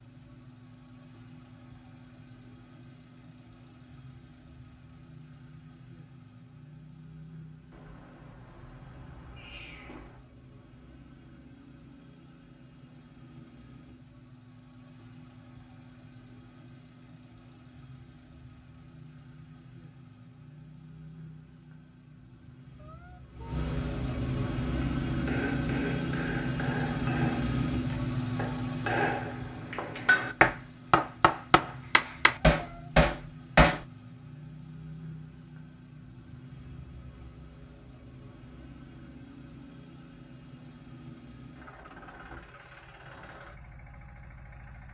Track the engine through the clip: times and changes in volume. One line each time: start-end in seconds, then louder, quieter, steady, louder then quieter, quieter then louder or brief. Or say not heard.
0.0-44.8 louder then quieter.